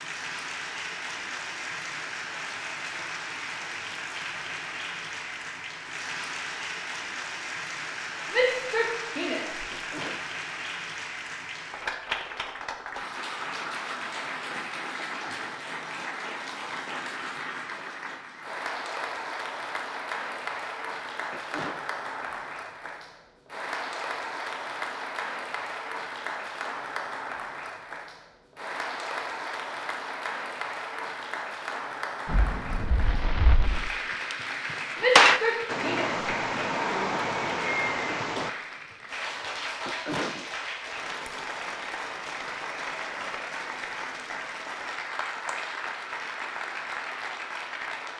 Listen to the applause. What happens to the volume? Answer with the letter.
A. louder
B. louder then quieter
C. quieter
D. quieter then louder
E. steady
E.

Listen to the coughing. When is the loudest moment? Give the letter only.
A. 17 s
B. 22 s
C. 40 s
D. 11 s
C.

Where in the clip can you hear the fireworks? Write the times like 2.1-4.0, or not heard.
32.2-34.4, 35.1-38.5.